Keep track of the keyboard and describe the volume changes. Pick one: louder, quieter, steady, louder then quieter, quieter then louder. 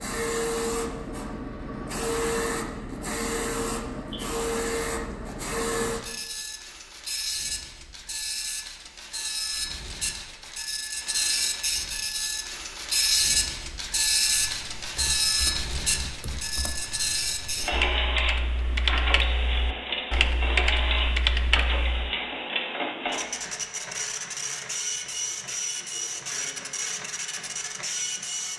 louder.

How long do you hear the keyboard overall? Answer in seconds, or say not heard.
8 s.